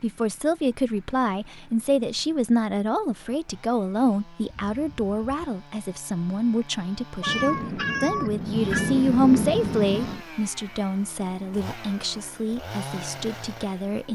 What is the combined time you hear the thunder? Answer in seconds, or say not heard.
3 s.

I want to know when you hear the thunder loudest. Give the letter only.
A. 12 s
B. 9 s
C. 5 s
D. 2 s
B.